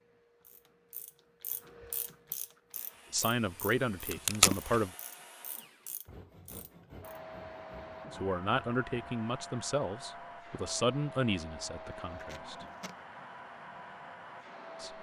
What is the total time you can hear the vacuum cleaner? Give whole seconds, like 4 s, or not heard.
11 s.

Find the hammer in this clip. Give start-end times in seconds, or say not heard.
not heard.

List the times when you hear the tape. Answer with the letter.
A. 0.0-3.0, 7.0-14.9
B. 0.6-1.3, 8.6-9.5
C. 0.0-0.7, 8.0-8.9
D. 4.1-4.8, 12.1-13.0
D.